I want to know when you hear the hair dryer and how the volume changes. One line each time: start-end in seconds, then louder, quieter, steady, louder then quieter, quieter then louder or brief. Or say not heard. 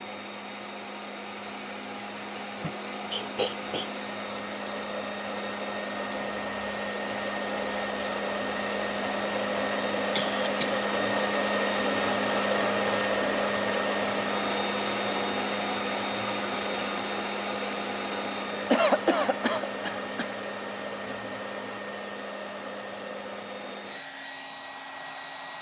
0.0-25.5 louder then quieter.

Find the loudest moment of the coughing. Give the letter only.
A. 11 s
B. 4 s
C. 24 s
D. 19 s
D.